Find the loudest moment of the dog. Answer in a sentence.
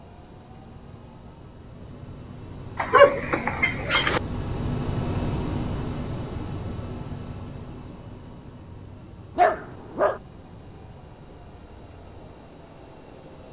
The volume of the dog peaks at 3 seconds.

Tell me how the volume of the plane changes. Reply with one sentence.
The volume of the plane goes up, then down.